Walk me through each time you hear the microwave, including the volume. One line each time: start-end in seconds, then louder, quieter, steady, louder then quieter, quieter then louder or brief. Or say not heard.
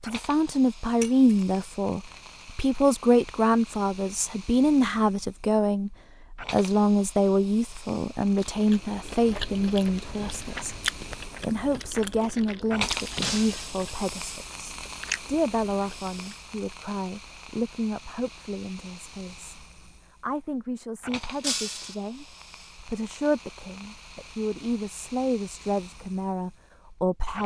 not heard.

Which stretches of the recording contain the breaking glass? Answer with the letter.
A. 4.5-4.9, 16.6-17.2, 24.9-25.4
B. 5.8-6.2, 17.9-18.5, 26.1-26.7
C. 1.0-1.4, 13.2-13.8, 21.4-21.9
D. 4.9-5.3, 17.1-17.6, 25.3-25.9
C.